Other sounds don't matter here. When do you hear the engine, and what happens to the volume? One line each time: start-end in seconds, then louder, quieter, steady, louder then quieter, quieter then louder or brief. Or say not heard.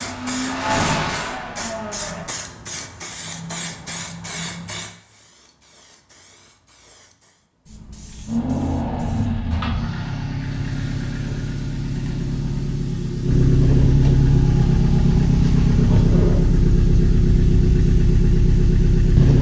0.0-2.2 brief
8.2-19.3 louder.